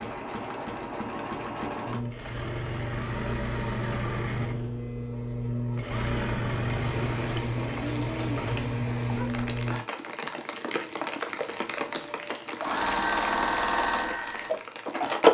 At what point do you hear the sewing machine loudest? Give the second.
15 s.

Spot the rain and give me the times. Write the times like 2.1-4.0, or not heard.
6.7-15.3.